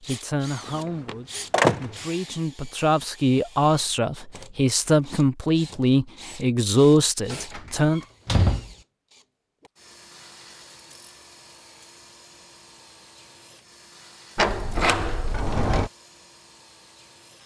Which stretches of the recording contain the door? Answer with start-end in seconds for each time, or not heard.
1.1-1.8, 7.2-8.8, 14.3-15.9.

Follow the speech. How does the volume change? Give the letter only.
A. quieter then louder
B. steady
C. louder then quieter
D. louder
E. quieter
D.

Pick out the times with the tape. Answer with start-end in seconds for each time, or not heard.
not heard.